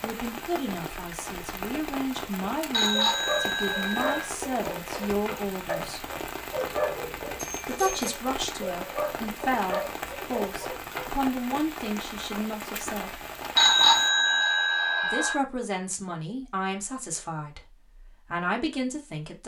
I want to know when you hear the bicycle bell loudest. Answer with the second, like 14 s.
14 s.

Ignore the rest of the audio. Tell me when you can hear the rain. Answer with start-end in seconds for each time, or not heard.
0.0-14.1.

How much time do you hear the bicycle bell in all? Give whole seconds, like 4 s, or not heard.
4 s.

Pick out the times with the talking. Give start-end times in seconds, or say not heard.
0.0-6.1, 7.7-13.2, 15.0-19.4.